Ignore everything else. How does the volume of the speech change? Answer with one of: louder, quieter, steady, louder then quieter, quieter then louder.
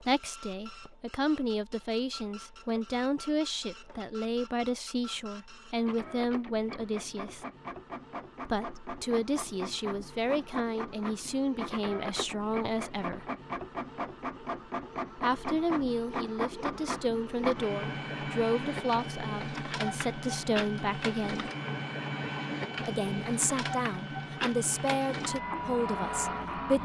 steady.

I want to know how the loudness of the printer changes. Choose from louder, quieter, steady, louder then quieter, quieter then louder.
louder.